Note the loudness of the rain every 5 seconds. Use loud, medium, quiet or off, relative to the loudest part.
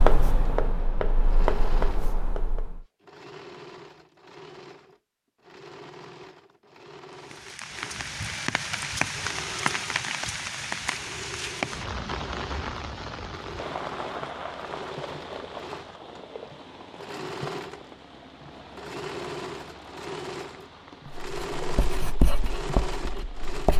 off, loud, loud, medium, quiet.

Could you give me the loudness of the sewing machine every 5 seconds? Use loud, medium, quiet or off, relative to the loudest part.
medium, medium, medium, loud, loud.